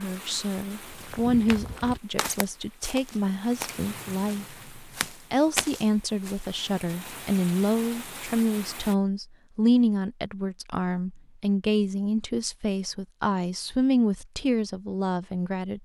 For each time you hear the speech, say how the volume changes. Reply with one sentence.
You can hear the speech from 0.0 to 15.8 s, at a steady volume.